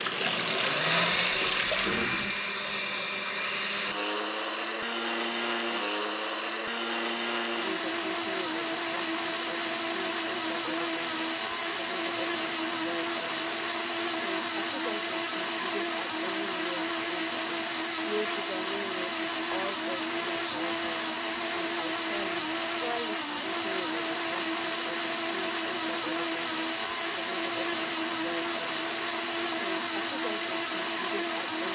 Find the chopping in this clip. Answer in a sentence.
You can't hear the chopping here.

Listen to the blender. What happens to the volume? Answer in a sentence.
The loudness of the blender stays about the same.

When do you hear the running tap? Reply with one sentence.
The running tap can be heard from 0.0 to 2.4 s.